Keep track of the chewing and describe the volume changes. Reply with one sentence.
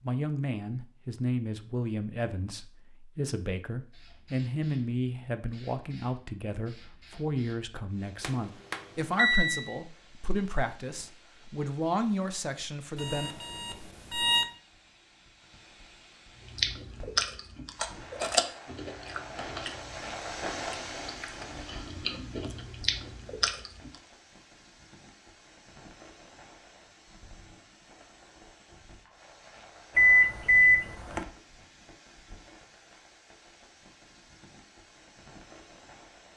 The loudness of the chewing goes down, then up.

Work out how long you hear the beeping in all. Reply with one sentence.
The beeping can be heard for 4 seconds in total.